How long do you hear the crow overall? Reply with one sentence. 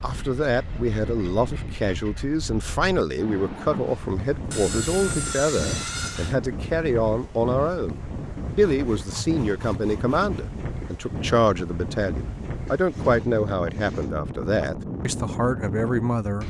The crow can't be heard in this clip.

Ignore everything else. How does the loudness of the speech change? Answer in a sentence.
The volume of the speech stays about the same.